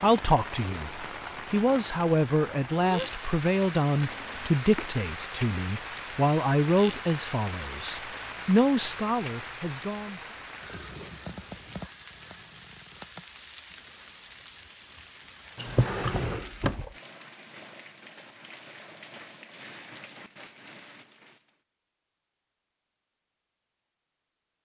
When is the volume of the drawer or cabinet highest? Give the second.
16 s.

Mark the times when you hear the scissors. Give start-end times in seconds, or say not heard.
15.6-16.3.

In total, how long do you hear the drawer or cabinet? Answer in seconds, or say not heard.
2 s.